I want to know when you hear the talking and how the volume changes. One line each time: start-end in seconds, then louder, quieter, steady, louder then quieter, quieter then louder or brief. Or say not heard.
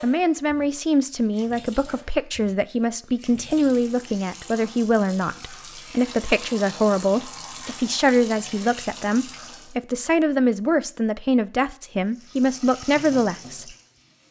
0.0-13.7 steady.